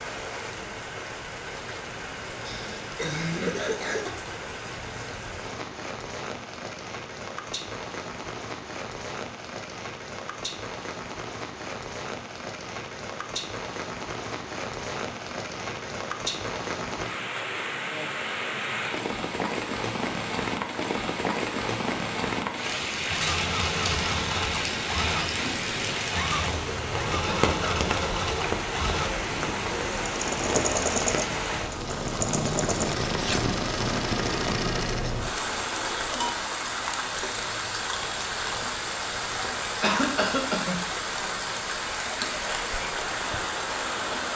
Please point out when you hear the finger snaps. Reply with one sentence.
You can't hear the finger snaps here.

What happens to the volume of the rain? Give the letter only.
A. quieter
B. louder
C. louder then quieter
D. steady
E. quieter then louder
B.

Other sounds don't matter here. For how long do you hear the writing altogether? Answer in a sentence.
The writing can't be heard in this clip.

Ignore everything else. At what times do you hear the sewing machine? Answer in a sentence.
You can hear the sewing machine from 23.1 to 35.4 s.